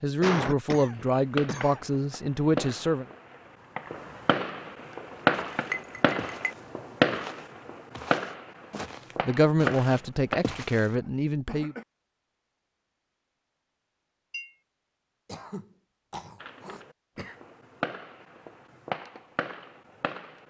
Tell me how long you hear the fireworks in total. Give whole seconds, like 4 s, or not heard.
14 s.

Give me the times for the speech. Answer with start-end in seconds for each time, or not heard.
0.0-3.0, 9.2-11.8.